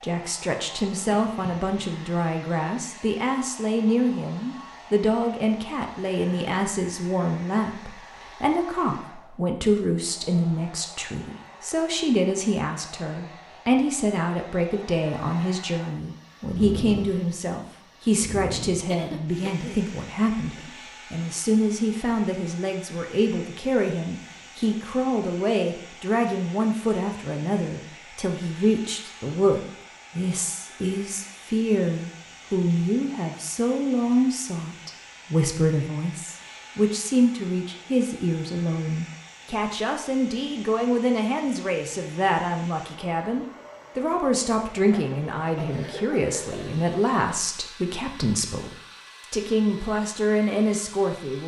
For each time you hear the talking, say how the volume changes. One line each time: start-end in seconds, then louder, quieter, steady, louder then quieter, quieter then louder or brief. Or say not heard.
0.0-48.7 steady
49.3-51.4 brief.